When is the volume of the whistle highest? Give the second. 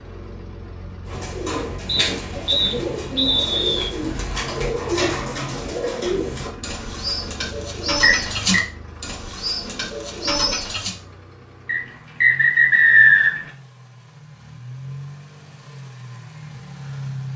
13 s.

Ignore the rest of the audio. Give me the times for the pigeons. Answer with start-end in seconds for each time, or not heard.
1.1-10.9.